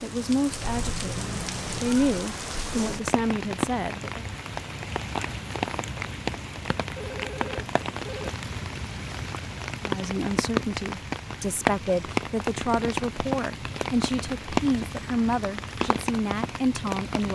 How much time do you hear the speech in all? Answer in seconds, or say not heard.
12 s.